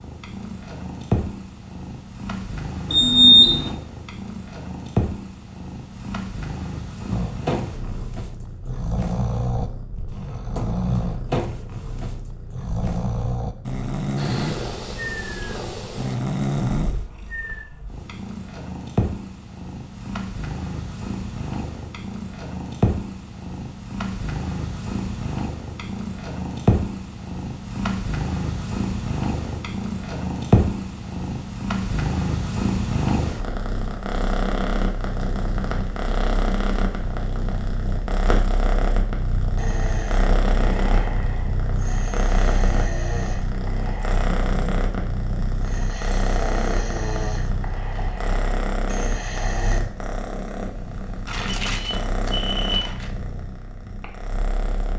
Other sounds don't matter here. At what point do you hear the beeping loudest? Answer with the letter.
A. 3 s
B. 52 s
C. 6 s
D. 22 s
A.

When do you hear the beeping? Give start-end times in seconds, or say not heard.
2.9-3.8, 51.2-53.1.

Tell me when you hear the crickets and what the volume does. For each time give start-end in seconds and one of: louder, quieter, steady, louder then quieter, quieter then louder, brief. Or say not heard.
not heard.